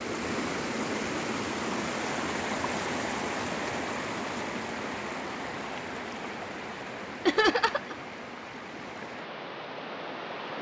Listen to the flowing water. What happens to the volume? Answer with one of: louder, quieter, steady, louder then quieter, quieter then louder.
quieter.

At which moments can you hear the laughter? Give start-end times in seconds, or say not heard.
7.2-8.0.